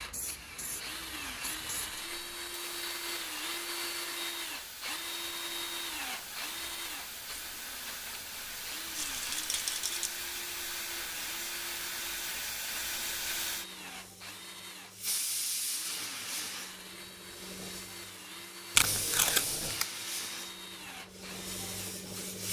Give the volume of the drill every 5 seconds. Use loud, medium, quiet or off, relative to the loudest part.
loud, loud, medium, medium, medium.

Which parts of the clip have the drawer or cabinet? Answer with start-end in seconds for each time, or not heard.
not heard.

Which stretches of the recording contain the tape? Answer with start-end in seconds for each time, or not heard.
18.8-19.9.